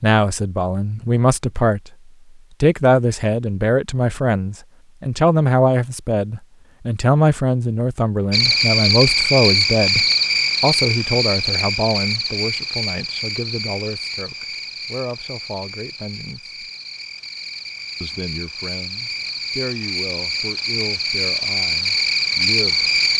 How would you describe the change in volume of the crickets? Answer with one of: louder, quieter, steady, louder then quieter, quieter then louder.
quieter then louder.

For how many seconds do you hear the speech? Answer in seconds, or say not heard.
21 s.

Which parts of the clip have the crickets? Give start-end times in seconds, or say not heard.
8.3-23.1.